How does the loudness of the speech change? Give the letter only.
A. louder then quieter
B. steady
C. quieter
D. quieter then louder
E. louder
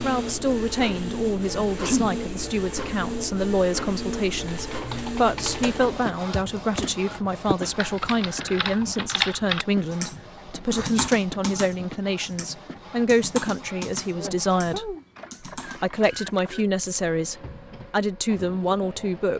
B.